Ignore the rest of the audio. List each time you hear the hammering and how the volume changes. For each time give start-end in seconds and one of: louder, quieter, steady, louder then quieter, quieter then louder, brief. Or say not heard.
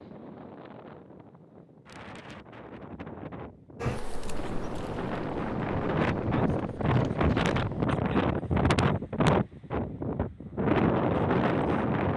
not heard.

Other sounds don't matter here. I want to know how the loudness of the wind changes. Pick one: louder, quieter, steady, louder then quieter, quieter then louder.
louder.